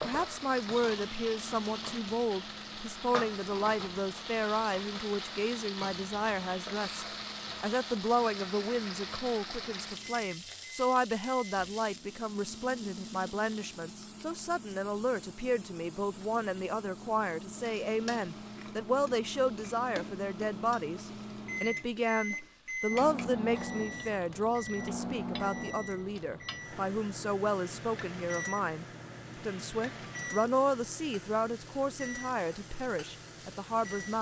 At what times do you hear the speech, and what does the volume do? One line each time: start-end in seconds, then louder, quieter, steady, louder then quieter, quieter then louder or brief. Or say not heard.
0.0-34.1 steady.